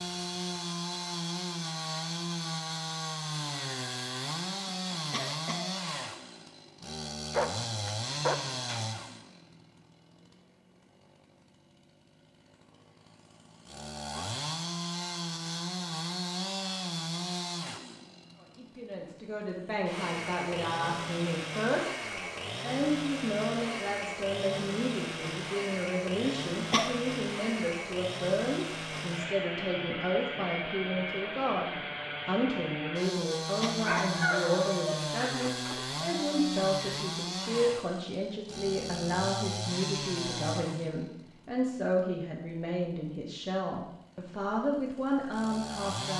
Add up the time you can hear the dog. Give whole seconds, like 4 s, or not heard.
4 s.